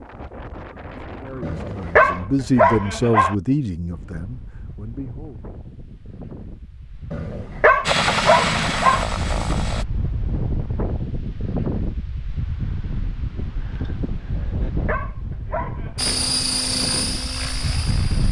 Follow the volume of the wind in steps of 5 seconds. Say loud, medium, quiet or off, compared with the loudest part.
medium, medium, loud, loud.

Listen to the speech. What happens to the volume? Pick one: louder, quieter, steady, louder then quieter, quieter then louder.
louder then quieter.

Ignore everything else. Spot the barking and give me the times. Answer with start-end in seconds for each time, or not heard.
1.4-3.4, 7.1-9.1, 14.3-16.1.